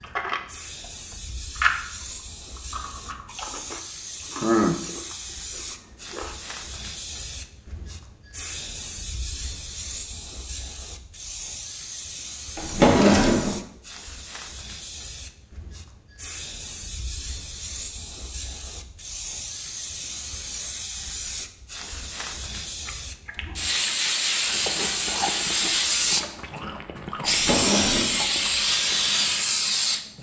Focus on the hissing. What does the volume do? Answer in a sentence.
The loudness of the hissing goes up.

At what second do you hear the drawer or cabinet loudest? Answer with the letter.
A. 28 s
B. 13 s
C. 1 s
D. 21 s
B.